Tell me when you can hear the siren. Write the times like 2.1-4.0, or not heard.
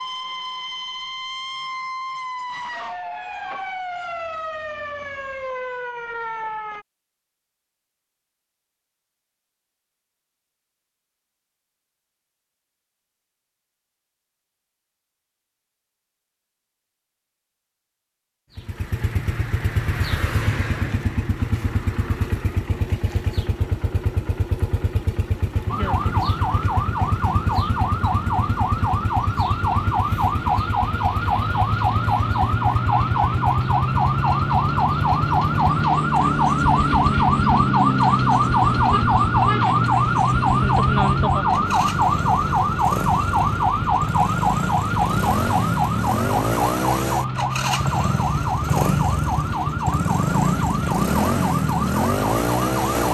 0.0-6.8, 25.6-53.0.